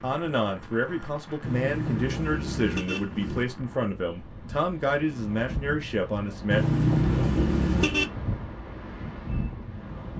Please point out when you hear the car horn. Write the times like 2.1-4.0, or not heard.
1.4-3.5, 6.5-8.1.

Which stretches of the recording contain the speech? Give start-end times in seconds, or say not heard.
0.0-6.6.